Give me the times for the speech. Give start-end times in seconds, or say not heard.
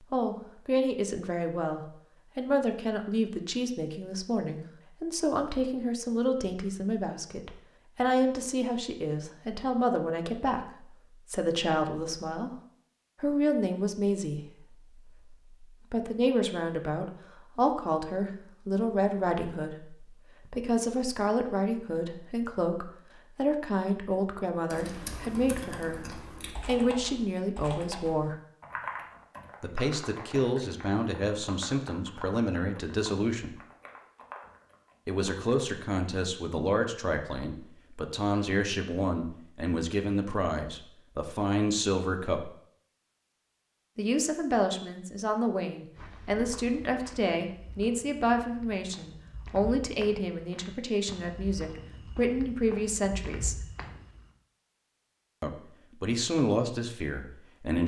0.1-12.5, 13.2-28.4, 29.6-33.5, 35.0-42.5, 44.0-53.5, 55.4-57.8.